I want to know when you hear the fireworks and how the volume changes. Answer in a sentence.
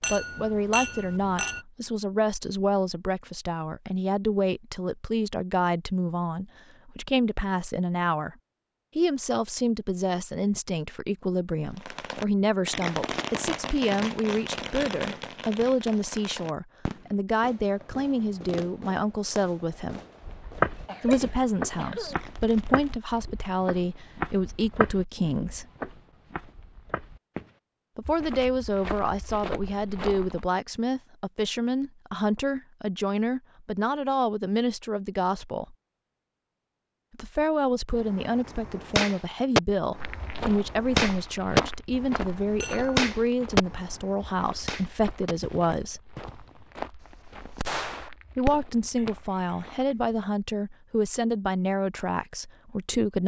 The fireworks can be heard from 11.8 to 23.1 s, getting quieter; and from 38.0 to 48.7 s, getting quieter.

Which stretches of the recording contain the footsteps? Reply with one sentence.
You can hear the footsteps from 20.2 to 30.4 s and from 40.0 to 50.2 s.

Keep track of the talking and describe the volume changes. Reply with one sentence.
The volume of the talking stays about the same.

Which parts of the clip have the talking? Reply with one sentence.
You can hear the talking from 0.1 to 8.3 s, from 8.9 to 20.0 s, from 21.0 to 25.6 s, from 27.9 to 35.8 s, from 37.1 to 46.0 s and from 48.4 to 53.2 s.